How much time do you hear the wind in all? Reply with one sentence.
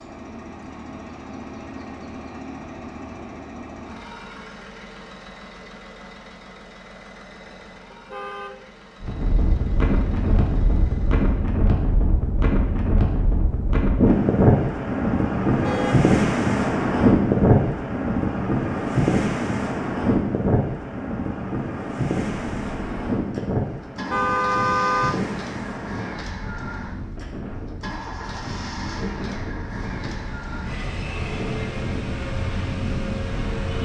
The wind can be heard for 25 seconds in total.